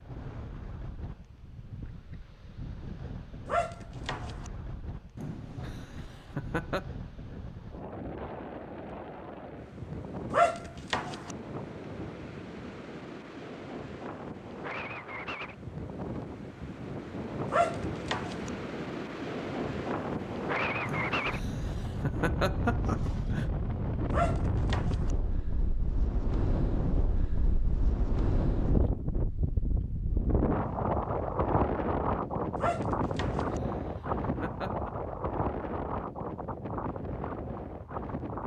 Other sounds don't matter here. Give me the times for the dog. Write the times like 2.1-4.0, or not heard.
3.5-4.5, 10.3-11.3, 17.5-18.5, 24.1-25.1, 32.5-33.6.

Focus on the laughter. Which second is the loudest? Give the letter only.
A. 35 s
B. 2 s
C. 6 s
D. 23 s
D.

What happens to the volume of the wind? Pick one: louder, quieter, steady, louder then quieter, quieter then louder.
louder.